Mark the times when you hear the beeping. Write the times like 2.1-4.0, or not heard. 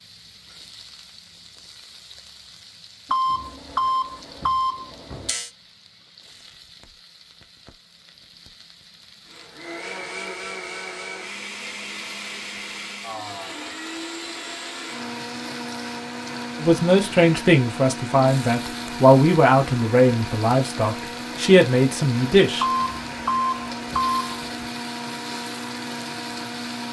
3.1-5.5, 22.6-24.7.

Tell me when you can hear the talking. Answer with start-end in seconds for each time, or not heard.
16.6-22.6.